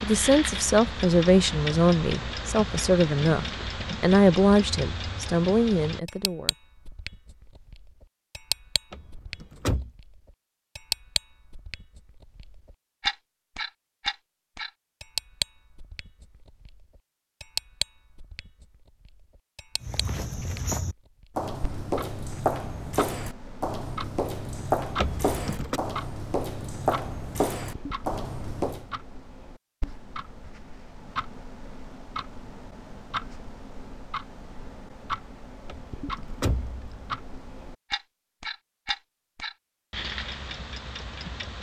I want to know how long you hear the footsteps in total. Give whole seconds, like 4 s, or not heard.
9 s.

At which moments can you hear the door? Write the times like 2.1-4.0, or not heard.
8.9-9.9, 24.9-25.8, 35.6-37.1.